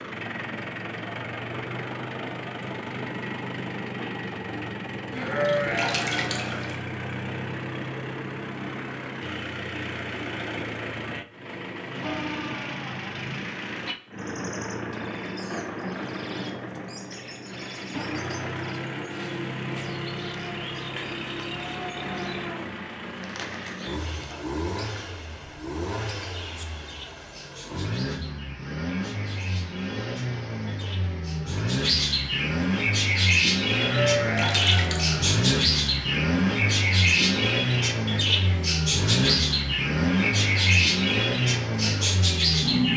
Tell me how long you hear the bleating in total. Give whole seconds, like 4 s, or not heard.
3 s.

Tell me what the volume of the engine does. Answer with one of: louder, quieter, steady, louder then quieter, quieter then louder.
louder.